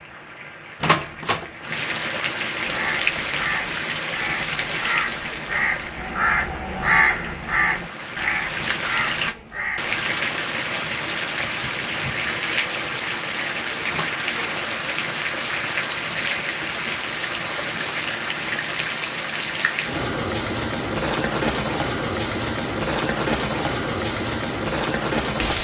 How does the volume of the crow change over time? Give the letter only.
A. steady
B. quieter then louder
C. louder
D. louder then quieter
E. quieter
D.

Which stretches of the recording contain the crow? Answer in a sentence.
The crow can be heard from 2.6 to 9.9 s.